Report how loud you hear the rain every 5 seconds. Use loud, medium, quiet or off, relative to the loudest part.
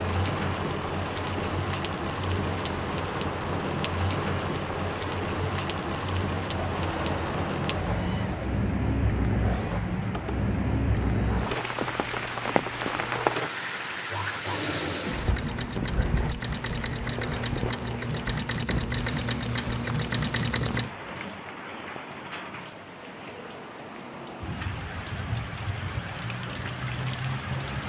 loud, loud, loud, medium, medium, loud.